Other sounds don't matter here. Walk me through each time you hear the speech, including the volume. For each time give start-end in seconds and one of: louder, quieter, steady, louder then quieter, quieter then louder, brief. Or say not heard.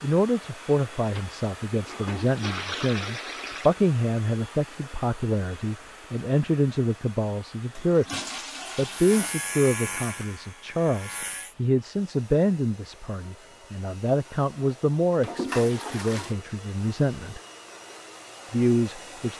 0.0-17.4 steady
18.5-19.3 brief.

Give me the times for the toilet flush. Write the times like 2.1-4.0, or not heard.
1.1-3.8, 7.8-9.3, 15.2-16.4.